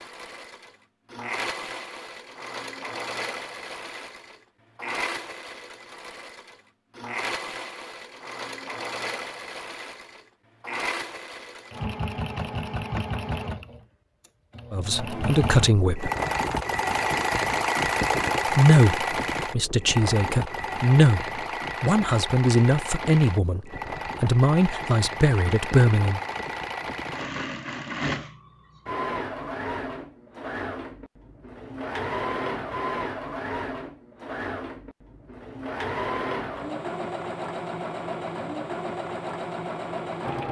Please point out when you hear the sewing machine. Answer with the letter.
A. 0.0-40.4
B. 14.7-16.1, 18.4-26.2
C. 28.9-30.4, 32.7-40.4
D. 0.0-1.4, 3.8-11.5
A.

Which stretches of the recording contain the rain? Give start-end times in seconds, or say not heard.
not heard.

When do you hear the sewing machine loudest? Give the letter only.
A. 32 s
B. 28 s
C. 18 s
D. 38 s
C.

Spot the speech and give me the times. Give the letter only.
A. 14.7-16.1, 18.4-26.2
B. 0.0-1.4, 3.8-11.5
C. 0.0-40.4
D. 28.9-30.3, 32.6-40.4
A.